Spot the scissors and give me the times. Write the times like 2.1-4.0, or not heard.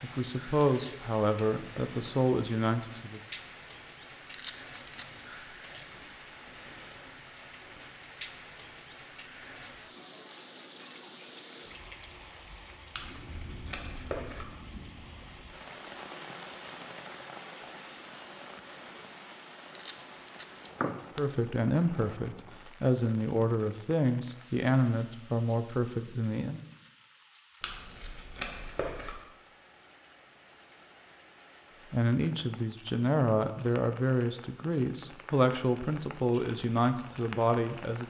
0.6-2.0, 12.9-14.4, 27.6-29.1.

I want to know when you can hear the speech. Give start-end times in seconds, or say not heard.
0.0-3.2, 21.1-26.6, 31.9-38.0.